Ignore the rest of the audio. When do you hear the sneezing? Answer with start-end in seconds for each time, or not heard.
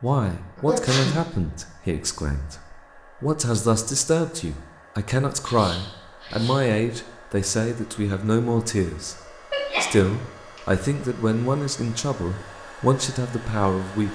0.6-1.1, 5.4-6.6, 9.5-10.2.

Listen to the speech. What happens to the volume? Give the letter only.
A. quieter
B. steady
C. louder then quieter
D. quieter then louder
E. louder
B.